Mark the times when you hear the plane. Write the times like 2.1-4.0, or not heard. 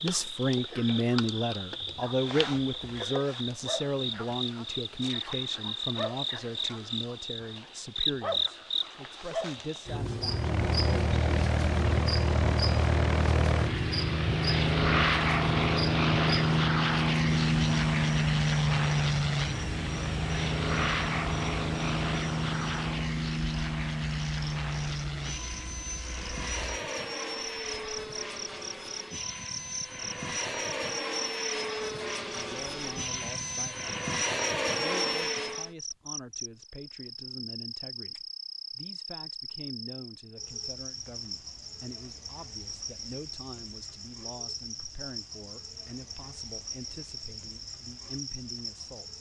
10.2-35.7.